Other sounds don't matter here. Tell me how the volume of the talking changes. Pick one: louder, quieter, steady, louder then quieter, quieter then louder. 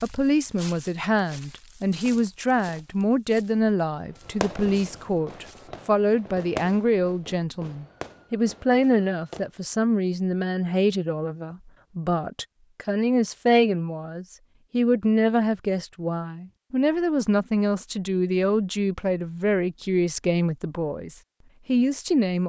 steady.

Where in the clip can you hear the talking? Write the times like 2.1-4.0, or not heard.
0.0-22.4.